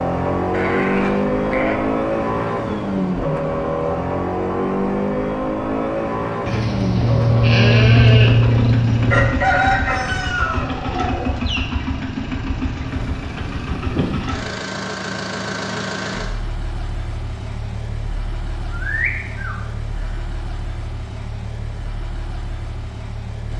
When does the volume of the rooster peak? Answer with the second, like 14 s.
10 s.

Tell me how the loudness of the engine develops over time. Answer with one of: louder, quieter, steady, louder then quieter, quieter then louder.
quieter.